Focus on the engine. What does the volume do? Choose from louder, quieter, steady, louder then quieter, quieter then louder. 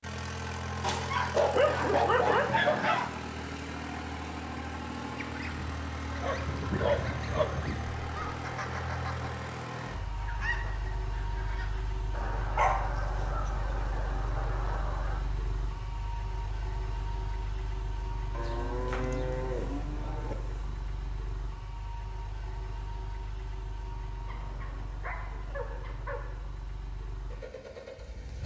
quieter.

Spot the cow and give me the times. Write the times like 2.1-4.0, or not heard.
18.3-20.4.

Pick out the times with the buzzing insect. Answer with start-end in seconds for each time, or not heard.
not heard.